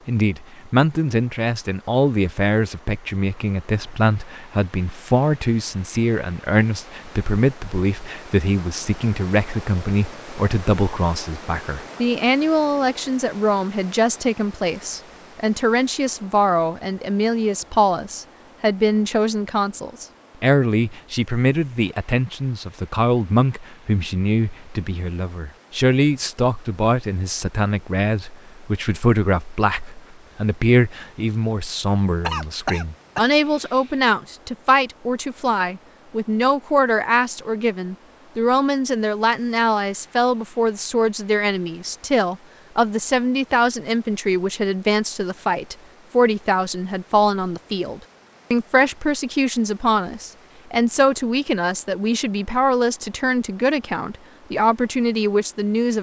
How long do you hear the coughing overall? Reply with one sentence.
You can hear the coughing for 2 seconds altogether.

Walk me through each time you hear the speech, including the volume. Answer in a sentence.
The speech can be heard from 0.1 to 55.9 s, at a steady volume.